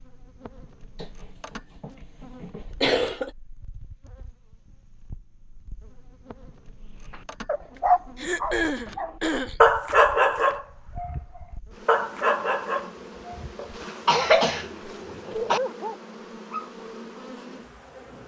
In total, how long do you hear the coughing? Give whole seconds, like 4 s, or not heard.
6 s.